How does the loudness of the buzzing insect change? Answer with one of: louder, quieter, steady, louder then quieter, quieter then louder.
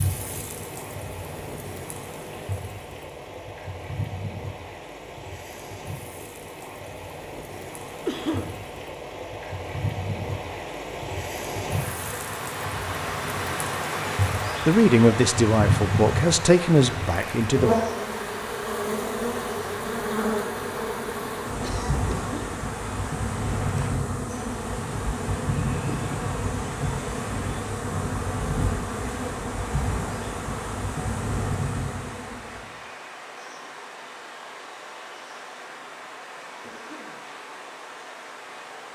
louder.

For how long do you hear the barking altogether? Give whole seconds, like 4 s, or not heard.
not heard.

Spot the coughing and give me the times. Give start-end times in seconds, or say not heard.
8.1-8.6, 21.4-22.6, 36.6-37.2.